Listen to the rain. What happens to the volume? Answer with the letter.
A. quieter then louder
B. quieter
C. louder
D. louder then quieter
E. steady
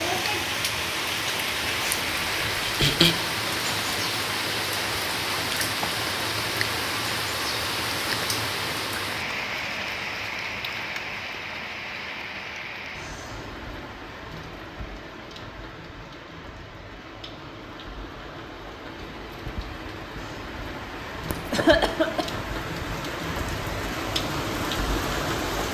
A.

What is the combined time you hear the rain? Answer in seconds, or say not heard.
26 s.